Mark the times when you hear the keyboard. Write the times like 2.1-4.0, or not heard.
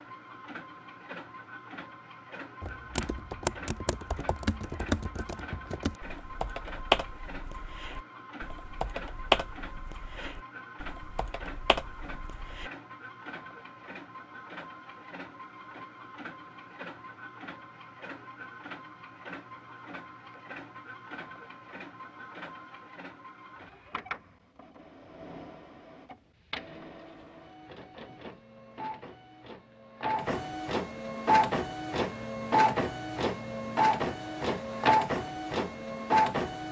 2.6-12.7.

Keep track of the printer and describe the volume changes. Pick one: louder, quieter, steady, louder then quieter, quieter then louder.
louder.